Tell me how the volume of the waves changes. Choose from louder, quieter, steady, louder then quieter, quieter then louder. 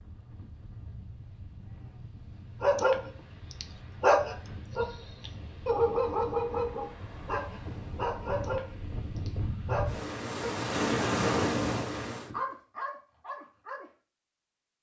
louder.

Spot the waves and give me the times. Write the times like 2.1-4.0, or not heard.
0.0-12.3.